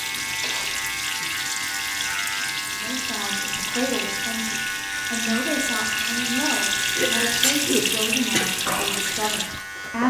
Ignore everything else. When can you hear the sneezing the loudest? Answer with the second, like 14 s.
8 s.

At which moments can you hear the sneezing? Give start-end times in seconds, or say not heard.
0.2-0.8, 6.8-8.5.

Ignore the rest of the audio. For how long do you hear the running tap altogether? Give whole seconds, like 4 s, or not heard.
10 s.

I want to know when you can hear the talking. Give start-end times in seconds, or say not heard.
2.6-10.0.